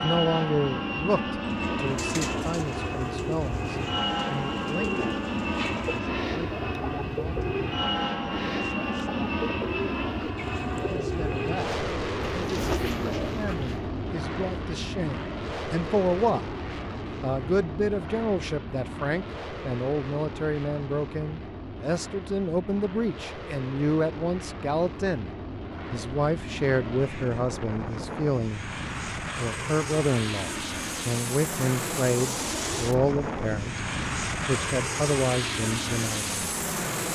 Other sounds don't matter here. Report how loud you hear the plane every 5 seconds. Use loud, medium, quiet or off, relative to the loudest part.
loud, loud, loud, medium, medium, medium, loud, loud.